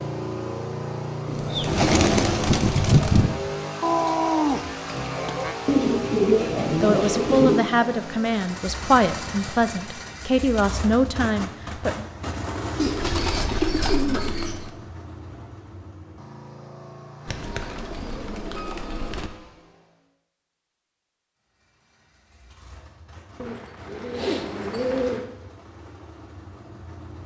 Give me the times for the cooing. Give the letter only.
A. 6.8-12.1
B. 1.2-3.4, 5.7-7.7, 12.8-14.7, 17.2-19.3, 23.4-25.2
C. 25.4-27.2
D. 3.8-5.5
B.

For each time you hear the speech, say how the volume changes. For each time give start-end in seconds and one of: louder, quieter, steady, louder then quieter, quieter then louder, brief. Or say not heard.
6.8-12.1 steady.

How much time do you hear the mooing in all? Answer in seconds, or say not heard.
2 s.